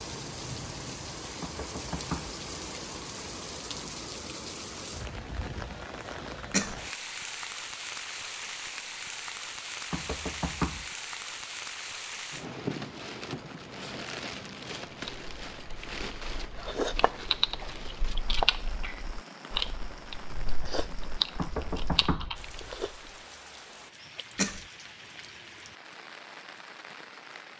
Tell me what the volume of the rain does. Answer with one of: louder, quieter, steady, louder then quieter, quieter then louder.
quieter.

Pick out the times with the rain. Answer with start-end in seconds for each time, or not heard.
0.0-27.5.